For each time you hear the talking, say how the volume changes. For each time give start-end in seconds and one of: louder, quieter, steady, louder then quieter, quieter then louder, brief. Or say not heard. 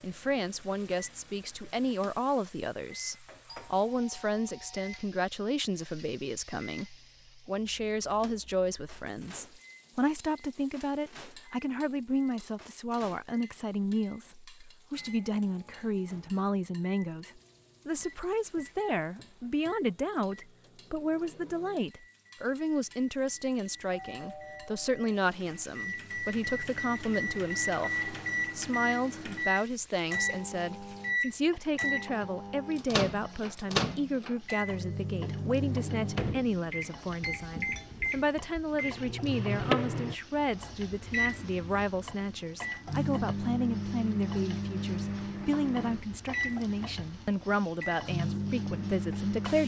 0.0-49.6 steady.